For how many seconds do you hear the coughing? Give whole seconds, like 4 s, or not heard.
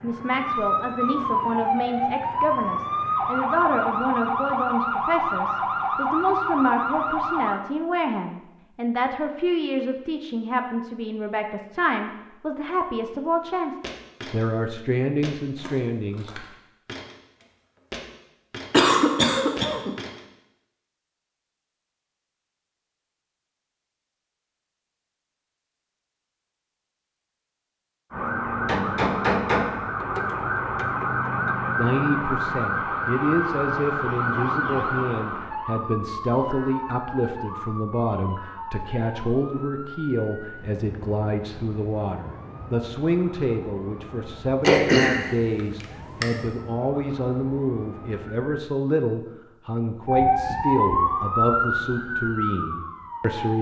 3 s.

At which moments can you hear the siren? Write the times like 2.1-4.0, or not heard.
0.0-7.6, 28.1-48.5, 50.0-53.5.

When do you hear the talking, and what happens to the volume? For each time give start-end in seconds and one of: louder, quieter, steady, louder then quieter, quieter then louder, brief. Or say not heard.
0.0-16.4 steady
31.8-53.5 steady.